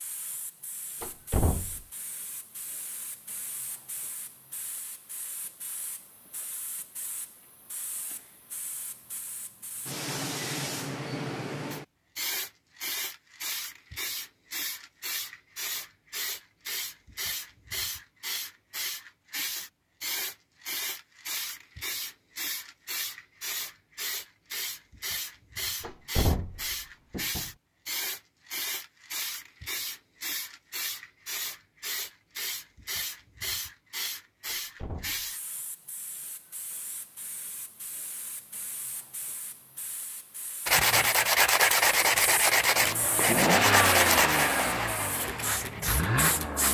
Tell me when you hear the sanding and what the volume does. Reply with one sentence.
You can hear the sanding from 40.6 to 46.0 s, getting quieter.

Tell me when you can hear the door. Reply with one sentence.
You can hear the door from 1.0 to 1.9 s, from 25.8 to 27.5 s and from 34.5 to 35.3 s.